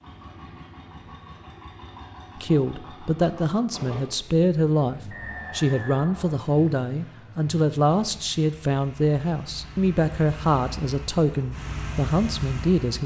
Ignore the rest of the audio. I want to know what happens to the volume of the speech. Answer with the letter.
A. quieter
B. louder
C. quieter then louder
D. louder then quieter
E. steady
E.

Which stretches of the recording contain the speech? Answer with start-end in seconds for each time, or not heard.
2.4-13.0.